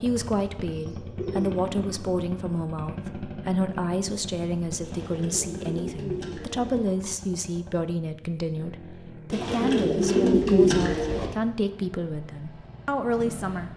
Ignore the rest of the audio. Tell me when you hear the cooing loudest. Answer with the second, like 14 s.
11 s.